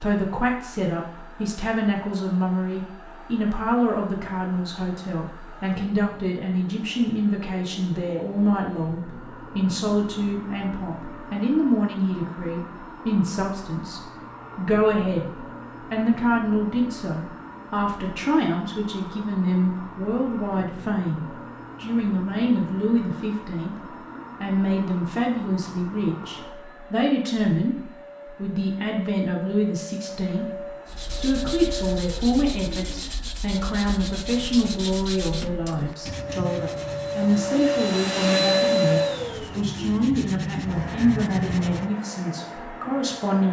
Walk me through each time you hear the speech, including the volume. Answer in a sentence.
You can hear the speech from 0.0 to 15.3 s, at a steady volume; and from 15.9 to 43.4 s, at a steady volume.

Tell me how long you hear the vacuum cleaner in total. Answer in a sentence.
You can hear the vacuum cleaner for 43 seconds altogether.